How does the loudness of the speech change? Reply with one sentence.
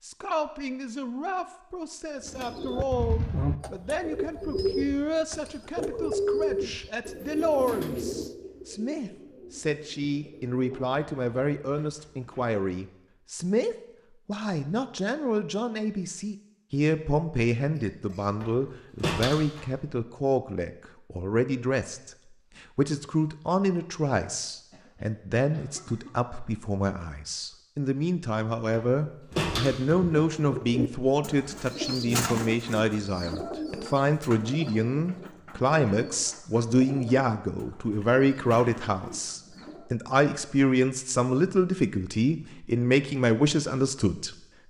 The volume of the speech goes up.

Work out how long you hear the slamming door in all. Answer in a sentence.
The slamming door can be heard for 3 seconds in total.